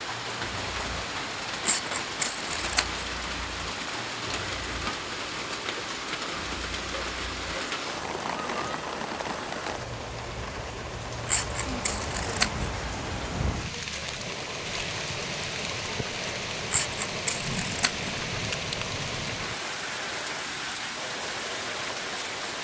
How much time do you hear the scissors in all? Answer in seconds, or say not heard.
4 s.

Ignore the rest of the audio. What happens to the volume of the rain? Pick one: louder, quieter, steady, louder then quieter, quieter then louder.
steady.